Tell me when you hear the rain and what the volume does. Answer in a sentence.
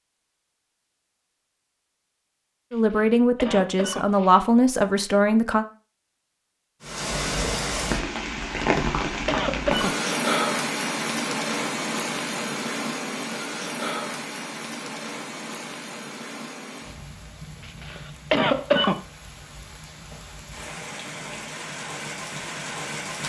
The rain can be heard from 6.8 to 23.2 s, getting quieter then louder.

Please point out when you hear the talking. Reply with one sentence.
The talking can be heard from 2.7 to 5.7 s.